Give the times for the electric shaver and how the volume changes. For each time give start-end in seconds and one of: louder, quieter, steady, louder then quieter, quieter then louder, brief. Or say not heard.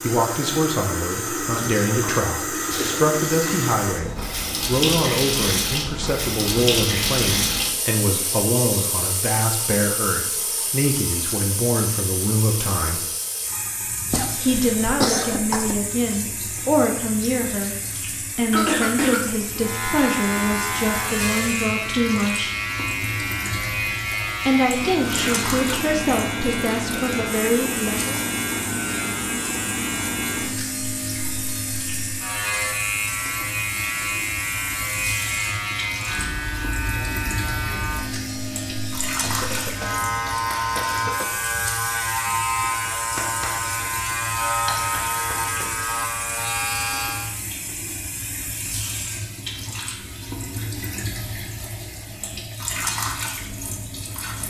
19.6-47.4 steady.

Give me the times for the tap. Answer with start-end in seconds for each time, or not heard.
0.0-54.4.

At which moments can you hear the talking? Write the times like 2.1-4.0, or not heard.
0.0-13.1, 14.4-22.6, 24.4-28.2.